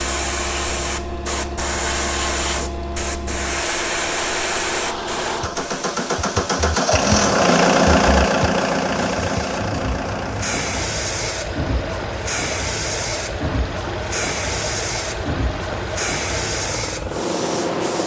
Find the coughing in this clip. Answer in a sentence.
The coughing can't be heard in this clip.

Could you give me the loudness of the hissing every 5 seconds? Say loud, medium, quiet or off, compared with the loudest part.
loud, medium, loud, loud.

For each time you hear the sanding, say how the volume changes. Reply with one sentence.
You can't hear the sanding here.